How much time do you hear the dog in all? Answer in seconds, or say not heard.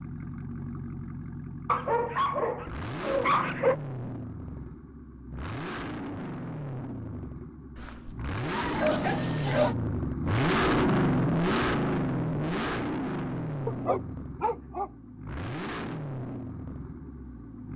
5 s.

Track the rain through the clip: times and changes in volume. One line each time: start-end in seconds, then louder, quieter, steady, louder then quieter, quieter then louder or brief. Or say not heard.
not heard.